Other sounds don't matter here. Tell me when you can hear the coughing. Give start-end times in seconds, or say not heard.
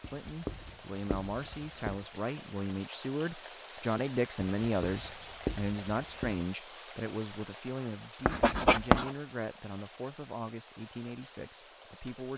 not heard.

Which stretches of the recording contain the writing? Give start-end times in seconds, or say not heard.
0.0-2.0, 4.6-6.5, 8.2-9.1.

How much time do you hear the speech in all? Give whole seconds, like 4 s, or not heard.
12 s.